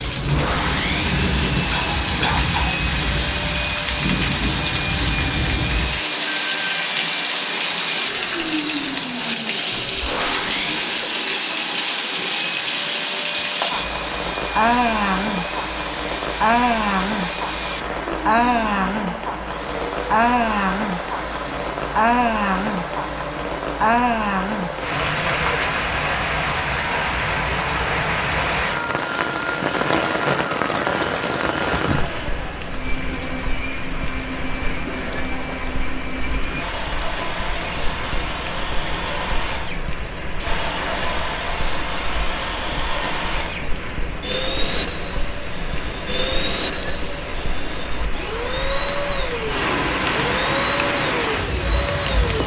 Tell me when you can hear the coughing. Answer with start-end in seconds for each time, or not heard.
1.7-2.8.